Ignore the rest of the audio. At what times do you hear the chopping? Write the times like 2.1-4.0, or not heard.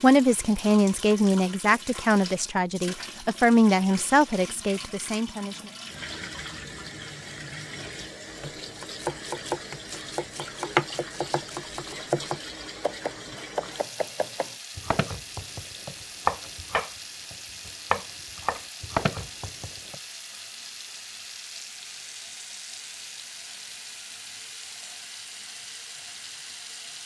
8.4-19.9.